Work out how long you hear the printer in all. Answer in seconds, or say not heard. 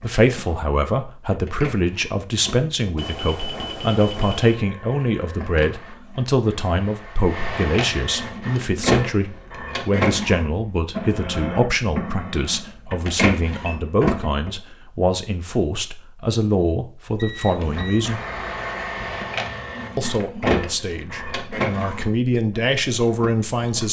21 s.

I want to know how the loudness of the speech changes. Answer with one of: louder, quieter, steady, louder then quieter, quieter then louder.
steady.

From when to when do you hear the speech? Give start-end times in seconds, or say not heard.
0.0-18.2, 19.9-23.8.